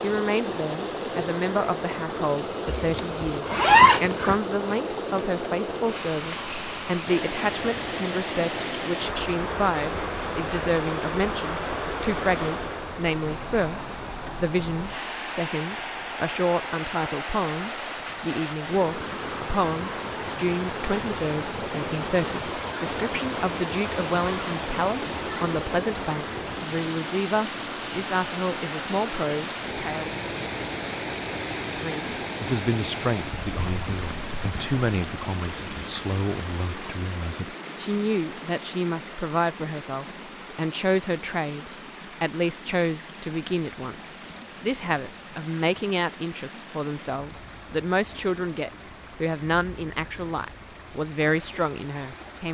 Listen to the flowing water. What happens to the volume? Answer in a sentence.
The loudness of the flowing water goes down.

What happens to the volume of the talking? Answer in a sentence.
The loudness of the talking stays about the same.